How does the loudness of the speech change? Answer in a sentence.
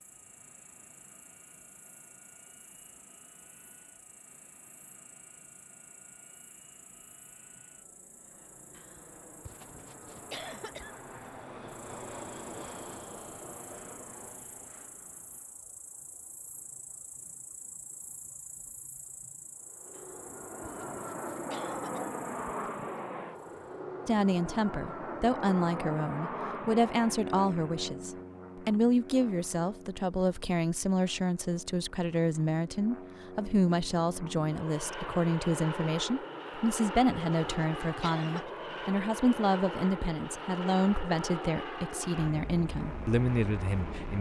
The loudness of the speech stays about the same.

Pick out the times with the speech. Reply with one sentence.
The speech can be heard from 24.1 to 44.1 s.